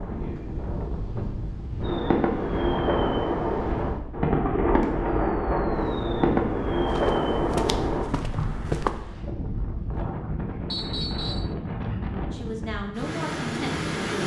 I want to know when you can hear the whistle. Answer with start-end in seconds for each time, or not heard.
10.7-11.6.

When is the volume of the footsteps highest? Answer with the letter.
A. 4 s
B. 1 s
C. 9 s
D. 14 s
C.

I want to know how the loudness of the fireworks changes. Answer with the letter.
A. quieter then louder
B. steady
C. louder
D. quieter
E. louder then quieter
B.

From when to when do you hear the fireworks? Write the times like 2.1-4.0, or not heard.
1.8-8.8.